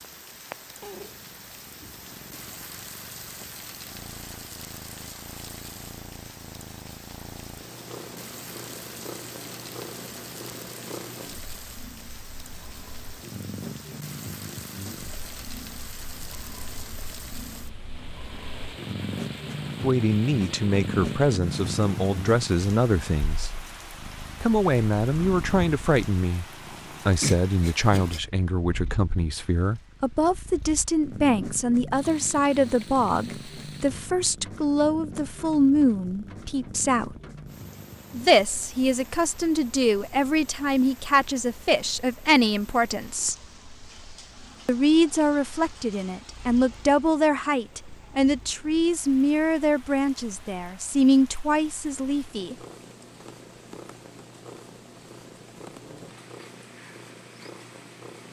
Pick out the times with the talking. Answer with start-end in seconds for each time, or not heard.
19.8-23.5, 24.4-26.4, 27.1-37.2, 38.1-43.4, 44.6-52.5.